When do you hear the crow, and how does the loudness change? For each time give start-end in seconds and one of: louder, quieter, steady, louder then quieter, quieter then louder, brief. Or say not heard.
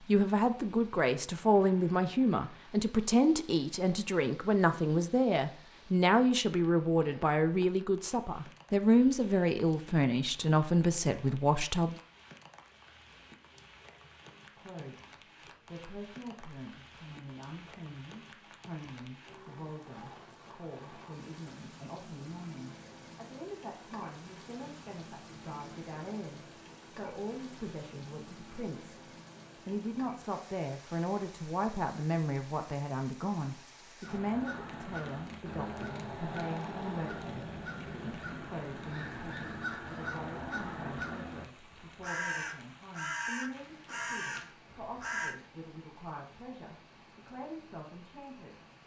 34.0-45.4 steady.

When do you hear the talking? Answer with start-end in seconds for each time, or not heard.
0.1-11.9, 14.6-29.0, 29.6-48.6.